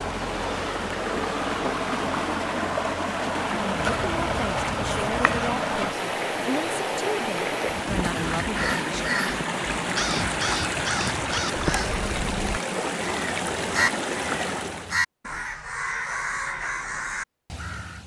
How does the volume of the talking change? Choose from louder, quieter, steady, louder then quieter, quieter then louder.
steady.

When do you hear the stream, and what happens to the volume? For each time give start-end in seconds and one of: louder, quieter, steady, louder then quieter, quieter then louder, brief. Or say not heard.
0.0-15.0 steady.